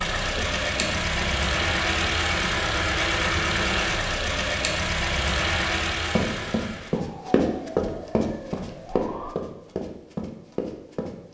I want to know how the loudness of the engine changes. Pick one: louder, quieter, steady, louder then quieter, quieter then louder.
steady.